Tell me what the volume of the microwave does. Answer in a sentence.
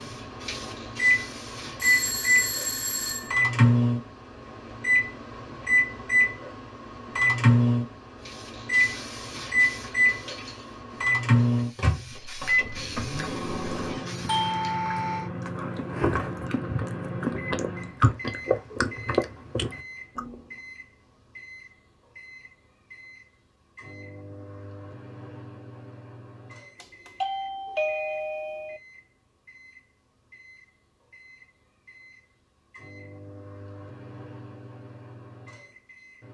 The volume of the microwave goes down.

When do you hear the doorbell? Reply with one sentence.
You can hear the doorbell from 1.8 to 3.4 s, from 14.2 to 15.3 s and from 26.8 to 28.8 s.